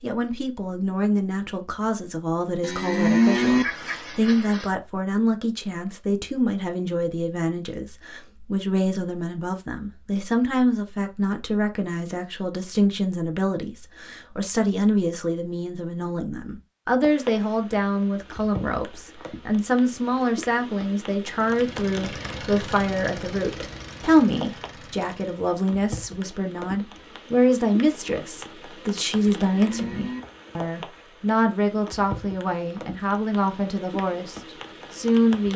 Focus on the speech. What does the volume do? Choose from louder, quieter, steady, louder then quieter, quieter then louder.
steady.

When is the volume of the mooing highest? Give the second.
3 s.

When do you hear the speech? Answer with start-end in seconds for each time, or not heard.
0.0-35.5.